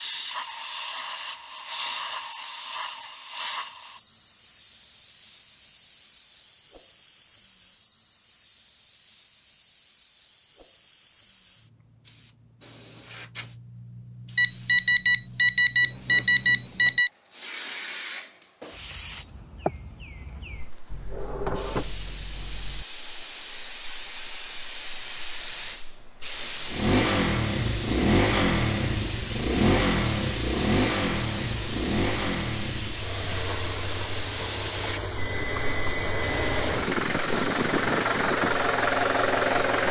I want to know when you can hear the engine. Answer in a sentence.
The engine can be heard from 26.7 to 39.8 s.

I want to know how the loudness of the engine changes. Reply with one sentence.
The loudness of the engine goes down, then up.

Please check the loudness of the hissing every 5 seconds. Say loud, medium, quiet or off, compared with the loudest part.
medium, quiet, quiet, medium, medium, loud, loud, loud.